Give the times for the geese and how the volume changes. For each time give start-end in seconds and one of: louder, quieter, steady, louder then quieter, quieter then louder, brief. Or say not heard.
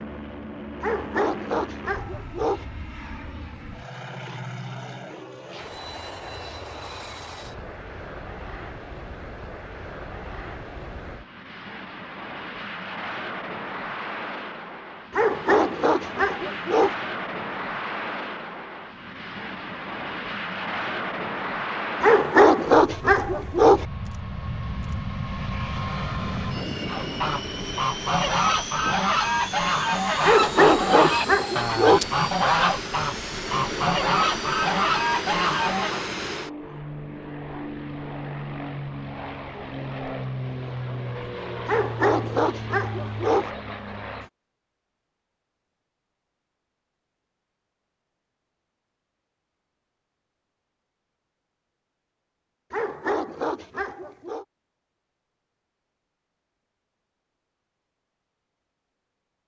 26.9-36.0 steady.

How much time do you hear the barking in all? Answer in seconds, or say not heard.
11 s.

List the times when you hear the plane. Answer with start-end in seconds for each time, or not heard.
0.0-44.3.